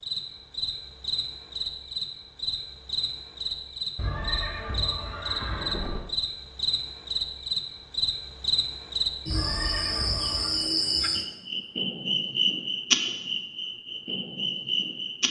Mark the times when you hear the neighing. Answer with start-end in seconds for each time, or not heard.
4.0-6.0, 9.3-10.5.